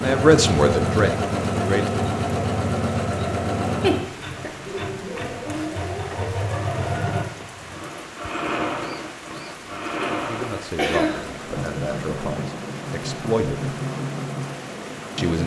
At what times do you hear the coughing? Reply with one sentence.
The coughing can be heard from 3.8 to 4.5 s and from 10.0 to 11.4 s.